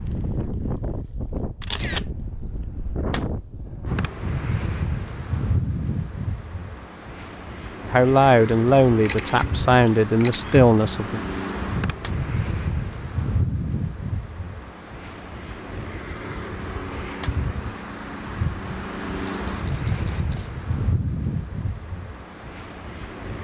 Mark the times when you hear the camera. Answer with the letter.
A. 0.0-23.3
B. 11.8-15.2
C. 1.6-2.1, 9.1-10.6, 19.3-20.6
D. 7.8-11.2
C.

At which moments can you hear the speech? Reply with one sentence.
The speech can be heard from 7.8 to 11.2 s.